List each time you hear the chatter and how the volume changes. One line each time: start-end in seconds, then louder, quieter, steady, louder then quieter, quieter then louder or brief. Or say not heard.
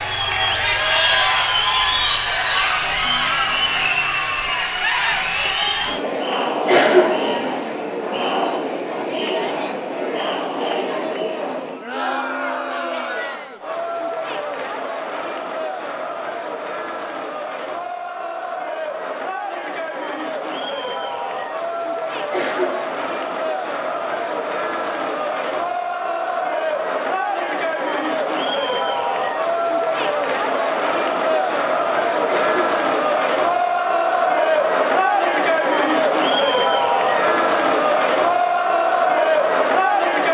0.0-40.2 quieter then louder.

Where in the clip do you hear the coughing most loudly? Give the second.
7 s.